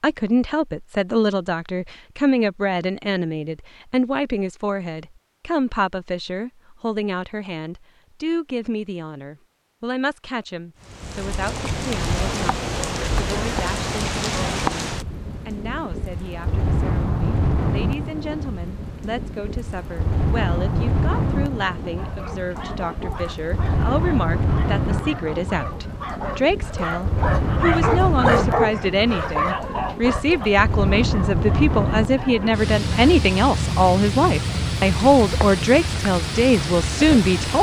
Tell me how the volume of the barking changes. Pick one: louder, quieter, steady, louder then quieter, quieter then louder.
louder then quieter.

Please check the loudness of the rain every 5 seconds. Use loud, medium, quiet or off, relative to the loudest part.
off, off, loud, loud, loud, loud, loud, loud.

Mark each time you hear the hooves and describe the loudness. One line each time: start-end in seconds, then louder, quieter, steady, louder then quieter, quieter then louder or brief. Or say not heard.
not heard.